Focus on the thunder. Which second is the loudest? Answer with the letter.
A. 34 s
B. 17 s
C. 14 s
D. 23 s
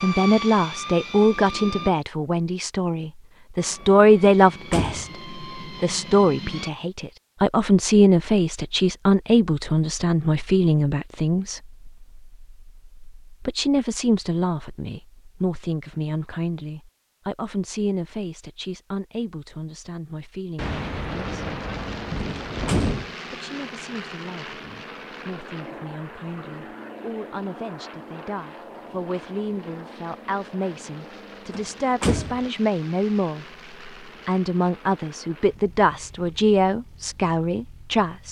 D.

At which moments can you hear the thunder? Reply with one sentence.
The thunder can be heard from 20.6 to 23.1 s.